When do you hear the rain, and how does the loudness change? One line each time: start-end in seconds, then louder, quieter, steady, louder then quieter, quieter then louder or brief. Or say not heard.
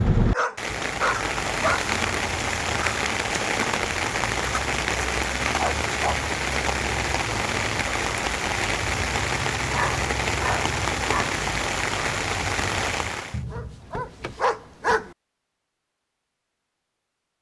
0.0-13.4 steady.